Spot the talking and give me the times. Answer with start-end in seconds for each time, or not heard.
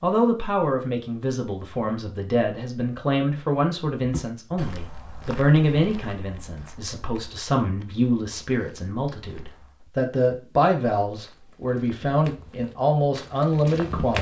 0.0-14.1.